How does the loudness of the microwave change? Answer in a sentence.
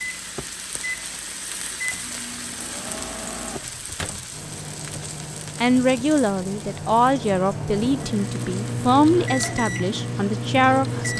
The loudness of the microwave goes up.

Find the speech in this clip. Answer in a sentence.
You can hear the speech from 5.6 to 11.1 s.